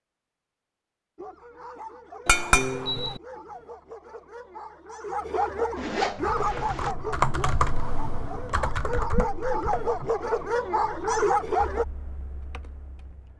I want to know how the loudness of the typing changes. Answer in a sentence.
The volume of the typing goes down.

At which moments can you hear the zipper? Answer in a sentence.
The zipper can be heard from 5.8 to 7.0 s.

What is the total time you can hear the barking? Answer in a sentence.
The barking can be heard for 11 seconds in total.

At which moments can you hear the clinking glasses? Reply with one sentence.
You can hear the clinking glasses from 2.2 to 3.2 s.